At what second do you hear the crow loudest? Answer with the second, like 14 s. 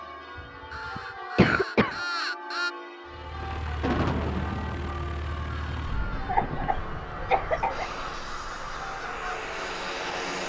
2 s.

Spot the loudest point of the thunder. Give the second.
4 s.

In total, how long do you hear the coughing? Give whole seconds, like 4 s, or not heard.
3 s.